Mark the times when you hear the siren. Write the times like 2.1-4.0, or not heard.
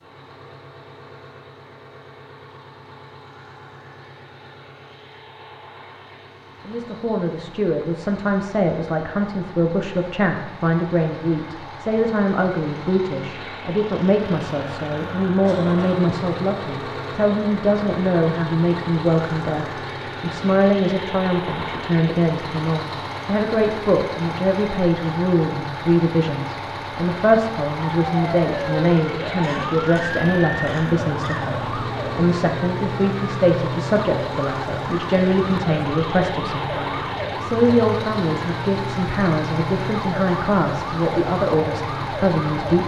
27.9-42.8.